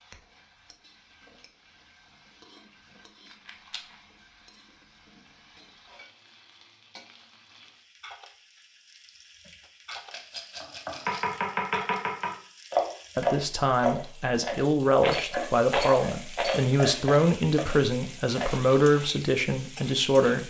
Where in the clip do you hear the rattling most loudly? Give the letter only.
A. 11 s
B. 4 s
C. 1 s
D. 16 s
D.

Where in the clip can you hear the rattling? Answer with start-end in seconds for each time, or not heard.
3.3-3.8, 9.9-11.3, 15.0-16.6.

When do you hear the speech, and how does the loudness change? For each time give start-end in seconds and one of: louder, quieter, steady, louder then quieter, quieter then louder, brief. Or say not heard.
13.2-20.4 steady.